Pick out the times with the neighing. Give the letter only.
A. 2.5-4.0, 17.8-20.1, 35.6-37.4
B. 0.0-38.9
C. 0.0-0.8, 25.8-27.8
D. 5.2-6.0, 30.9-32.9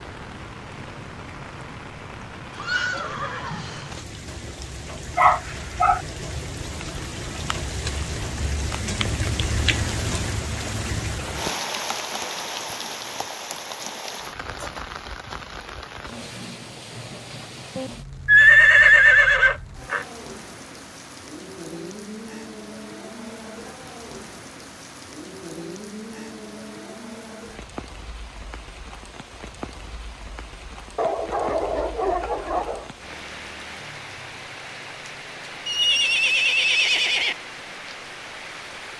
A.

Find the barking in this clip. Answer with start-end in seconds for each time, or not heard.
5.2-6.0, 30.9-32.9.